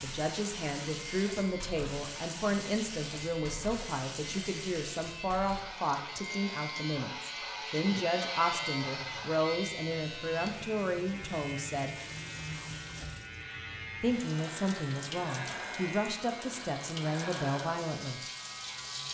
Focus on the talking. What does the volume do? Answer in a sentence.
The loudness of the talking stays about the same.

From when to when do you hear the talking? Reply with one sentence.
The talking can be heard from 0.0 to 11.9 s and from 14.0 to 18.2 s.